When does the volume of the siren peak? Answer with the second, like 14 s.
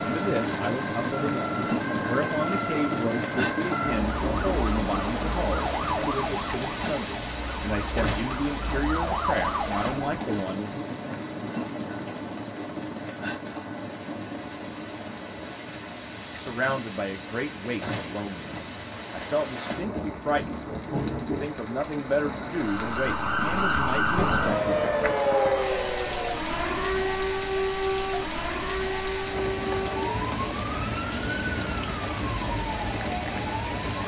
25 s.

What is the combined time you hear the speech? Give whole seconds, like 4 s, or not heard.
19 s.